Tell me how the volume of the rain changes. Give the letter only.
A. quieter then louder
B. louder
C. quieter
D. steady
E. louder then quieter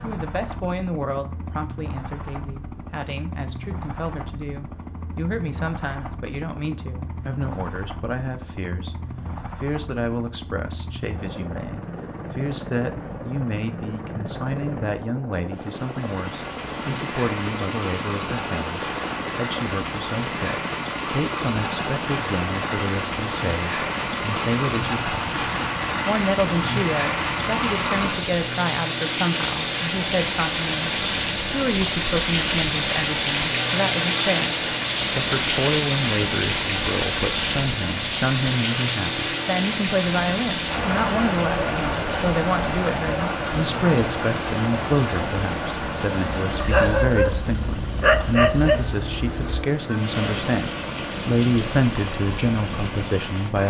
E.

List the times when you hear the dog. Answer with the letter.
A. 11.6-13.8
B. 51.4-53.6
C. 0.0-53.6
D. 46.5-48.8
D.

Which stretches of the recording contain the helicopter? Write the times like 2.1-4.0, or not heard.
0.0-53.6.